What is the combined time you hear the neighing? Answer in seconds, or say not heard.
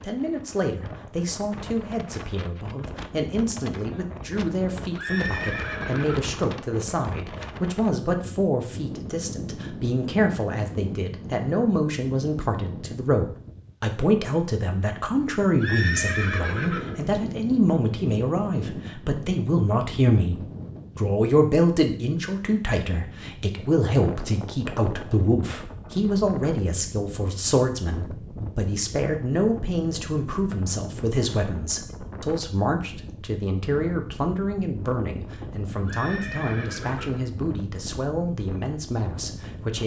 4 s.